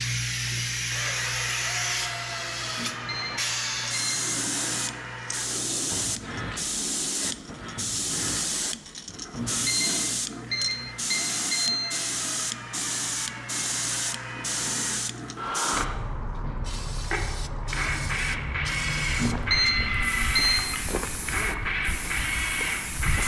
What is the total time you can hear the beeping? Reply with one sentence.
You can hear the beeping for 5 seconds altogether.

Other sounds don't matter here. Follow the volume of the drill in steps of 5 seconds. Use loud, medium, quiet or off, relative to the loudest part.
medium, medium, medium, loud, loud.